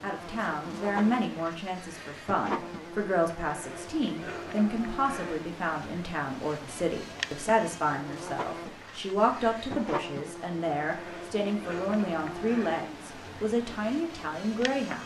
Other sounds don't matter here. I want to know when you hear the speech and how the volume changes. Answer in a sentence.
You can hear the speech from 0.0 to 15.0 s, at a steady volume.